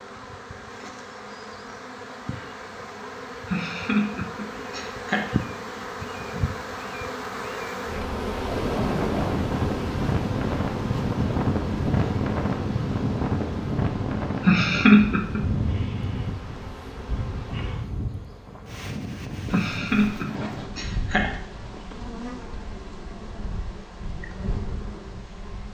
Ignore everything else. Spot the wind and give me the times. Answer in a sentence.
You can hear the wind from 8.3 to 25.4 s.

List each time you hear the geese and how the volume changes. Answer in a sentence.
You can't hear the geese here.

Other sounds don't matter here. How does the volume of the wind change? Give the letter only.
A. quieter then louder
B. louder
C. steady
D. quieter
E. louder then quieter
D.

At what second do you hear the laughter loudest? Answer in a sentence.
The loudest moment of the laughter is at 15 seconds.